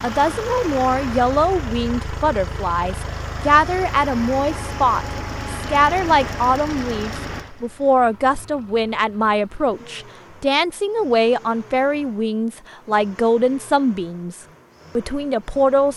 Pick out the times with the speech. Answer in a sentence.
The speech can be heard from 0.0 to 15.9 s.